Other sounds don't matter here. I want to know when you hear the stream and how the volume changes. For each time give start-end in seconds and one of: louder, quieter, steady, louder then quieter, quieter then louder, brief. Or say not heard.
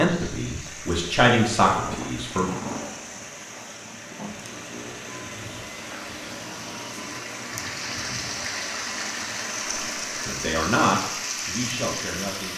0.0-12.5 louder.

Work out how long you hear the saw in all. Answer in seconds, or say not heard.
not heard.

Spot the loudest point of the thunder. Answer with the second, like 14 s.
3 s.